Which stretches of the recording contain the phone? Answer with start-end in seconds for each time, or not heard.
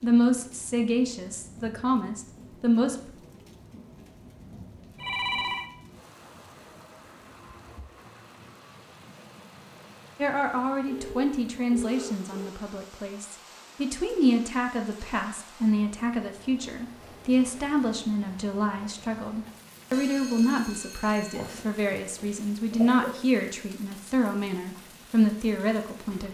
5.0-5.7, 10.8-12.5, 19.9-21.6.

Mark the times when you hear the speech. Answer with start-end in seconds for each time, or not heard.
0.0-3.1, 10.2-26.2.